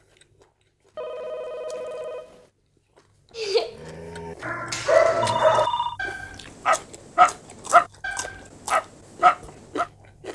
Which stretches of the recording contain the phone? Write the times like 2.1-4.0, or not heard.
0.9-2.5, 5.2-6.0.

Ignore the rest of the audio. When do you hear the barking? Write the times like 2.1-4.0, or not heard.
3.4-9.8.